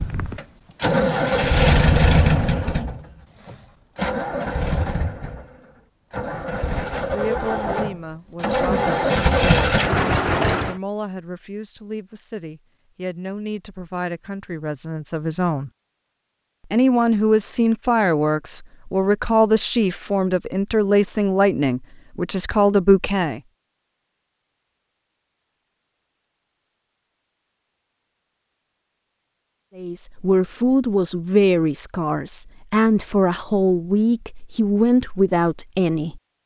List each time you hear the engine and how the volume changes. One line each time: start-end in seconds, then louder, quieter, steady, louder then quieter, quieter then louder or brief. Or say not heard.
0.0-10.8 quieter then louder.